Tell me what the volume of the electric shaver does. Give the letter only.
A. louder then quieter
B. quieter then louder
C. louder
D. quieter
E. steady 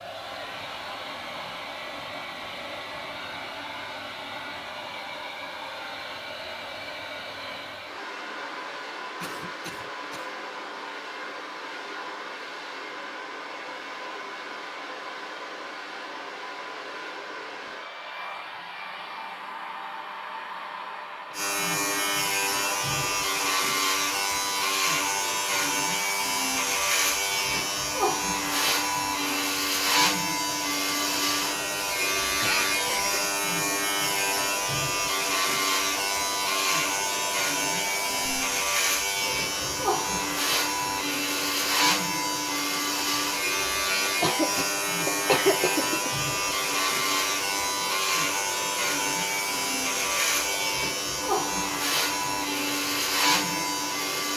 E.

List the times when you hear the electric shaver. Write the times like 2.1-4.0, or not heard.
21.3-54.3.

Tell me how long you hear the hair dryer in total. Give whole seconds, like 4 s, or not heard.
54 s.